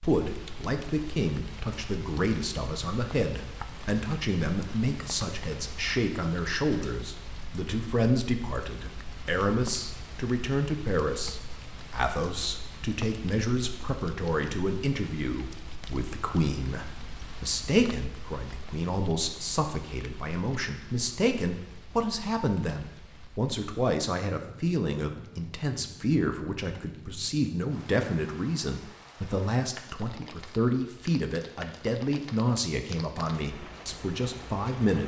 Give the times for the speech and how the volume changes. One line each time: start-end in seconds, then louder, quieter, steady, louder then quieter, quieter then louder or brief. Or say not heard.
0.0-35.0 steady.